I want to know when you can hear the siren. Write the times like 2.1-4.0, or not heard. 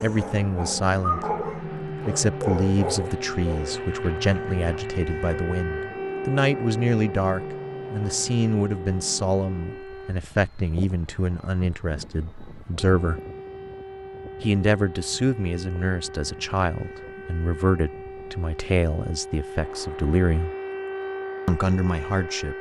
1.6-10.2, 12.8-22.5.